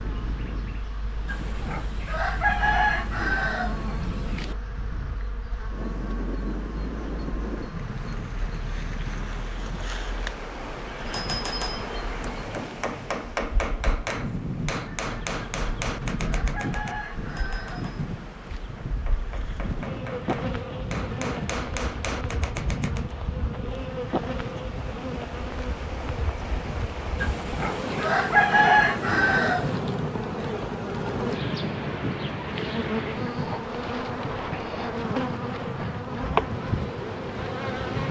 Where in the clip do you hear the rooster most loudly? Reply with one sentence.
The loudest moment of the rooster is at 29 seconds.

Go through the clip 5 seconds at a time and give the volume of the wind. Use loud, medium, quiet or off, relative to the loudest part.
medium, loud, loud, loud, loud, loud, loud, loud.